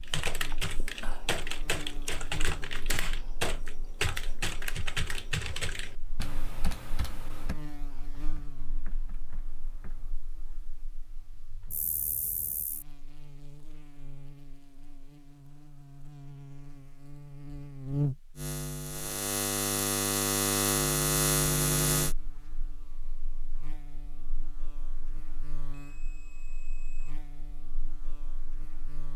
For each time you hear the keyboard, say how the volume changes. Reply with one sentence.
The keyboard can be heard from 0.0 to 10.2 s, getting quieter.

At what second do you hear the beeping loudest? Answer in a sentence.
The volume of the beeping peaks at 12 seconds.